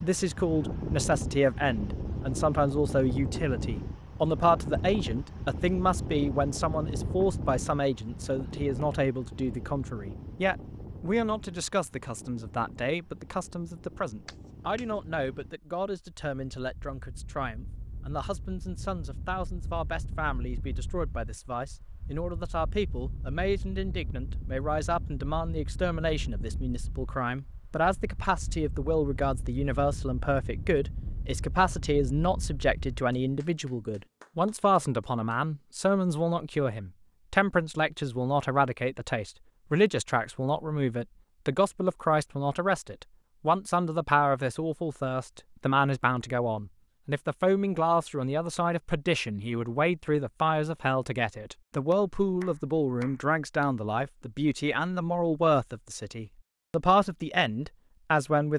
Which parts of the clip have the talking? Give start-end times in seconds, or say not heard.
0.0-58.5.